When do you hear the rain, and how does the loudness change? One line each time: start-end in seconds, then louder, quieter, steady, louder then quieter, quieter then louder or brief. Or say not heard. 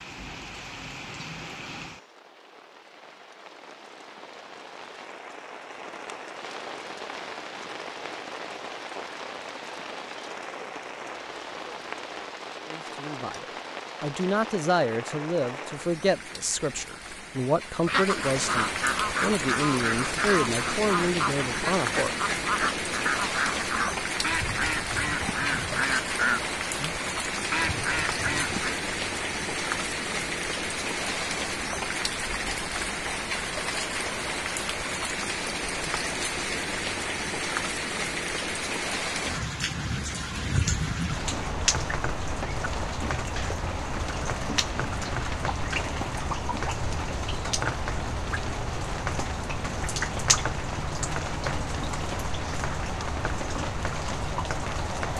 0.0-55.1 louder.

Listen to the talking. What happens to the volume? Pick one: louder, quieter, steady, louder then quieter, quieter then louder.
steady.